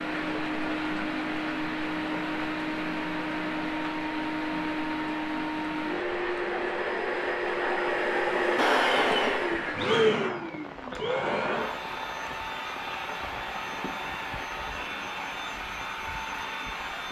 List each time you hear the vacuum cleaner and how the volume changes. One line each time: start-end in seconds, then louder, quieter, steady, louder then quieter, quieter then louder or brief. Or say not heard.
0.0-17.0 louder then quieter.